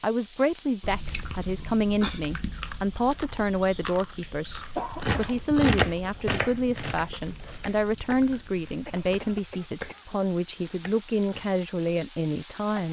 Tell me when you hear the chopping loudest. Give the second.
6 s.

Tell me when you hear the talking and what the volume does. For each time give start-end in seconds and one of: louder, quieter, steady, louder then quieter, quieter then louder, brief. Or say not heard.
0.0-12.8 steady.